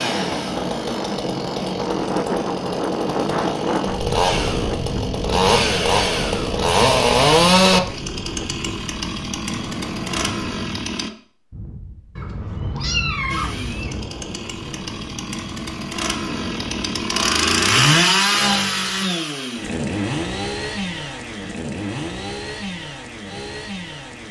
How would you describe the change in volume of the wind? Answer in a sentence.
The volume of the wind goes down.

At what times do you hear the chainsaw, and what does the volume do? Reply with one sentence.
You can hear the chainsaw from 0.0 to 11.1 s, getting louder then quieter; and from 13.3 to 24.2 s, getting louder then quieter.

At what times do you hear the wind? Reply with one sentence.
You can hear the wind from 0.0 to 17.1 s.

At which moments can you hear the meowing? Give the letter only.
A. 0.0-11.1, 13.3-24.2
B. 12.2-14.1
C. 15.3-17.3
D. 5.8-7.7
B.